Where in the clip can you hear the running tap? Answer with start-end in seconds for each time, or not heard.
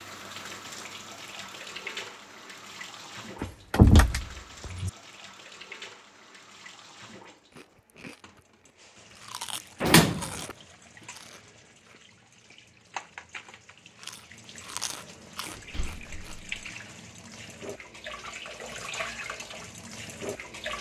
0.0-20.7.